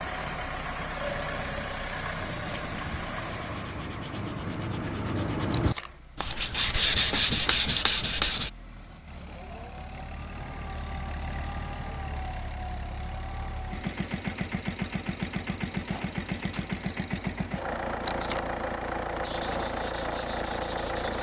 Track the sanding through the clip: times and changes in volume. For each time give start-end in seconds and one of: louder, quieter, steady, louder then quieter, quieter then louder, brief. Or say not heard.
2.1-8.5 louder
19.2-21.1 brief.